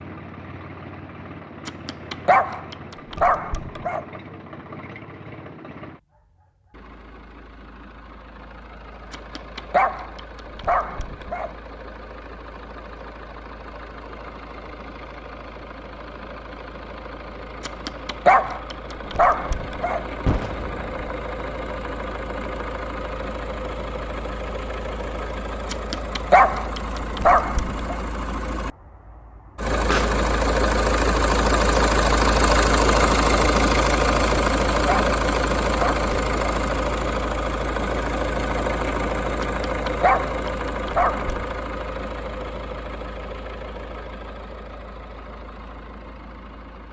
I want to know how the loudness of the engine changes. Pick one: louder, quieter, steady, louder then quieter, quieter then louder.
louder then quieter.